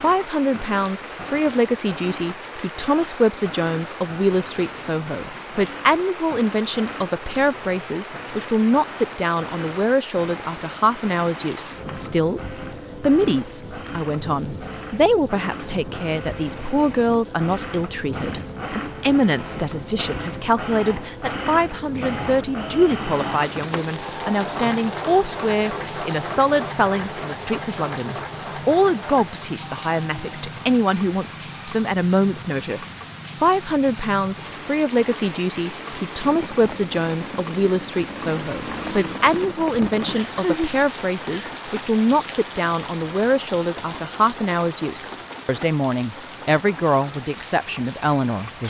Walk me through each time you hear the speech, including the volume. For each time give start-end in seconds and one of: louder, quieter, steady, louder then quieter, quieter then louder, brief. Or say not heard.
0.0-48.6 steady.